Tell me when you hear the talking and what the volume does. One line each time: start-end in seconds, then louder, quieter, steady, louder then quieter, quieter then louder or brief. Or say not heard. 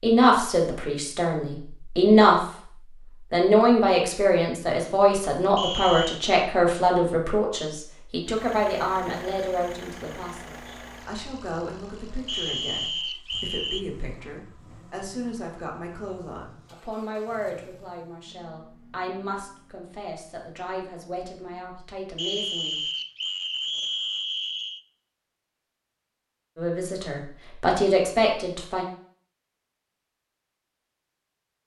0.0-2.5 brief
3.3-22.8 quieter
26.6-28.9 brief.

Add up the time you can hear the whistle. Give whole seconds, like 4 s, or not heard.
5 s.